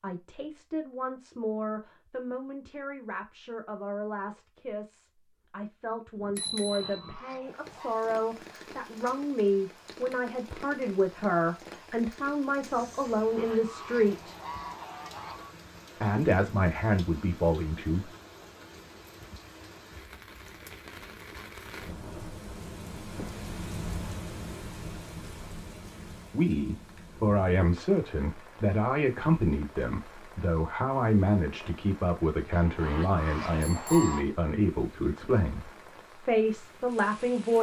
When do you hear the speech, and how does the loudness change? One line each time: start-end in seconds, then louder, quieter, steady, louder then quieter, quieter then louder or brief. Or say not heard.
0.0-14.4 louder
15.9-18.1 brief
26.3-35.6 steady
36.2-37.5 brief.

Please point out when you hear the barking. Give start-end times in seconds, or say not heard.
not heard.